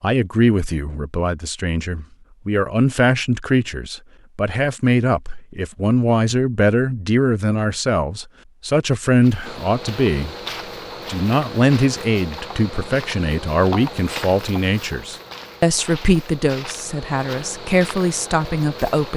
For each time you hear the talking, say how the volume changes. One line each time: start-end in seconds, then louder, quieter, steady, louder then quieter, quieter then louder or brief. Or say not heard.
0.0-10.3 steady
11.1-19.1 steady.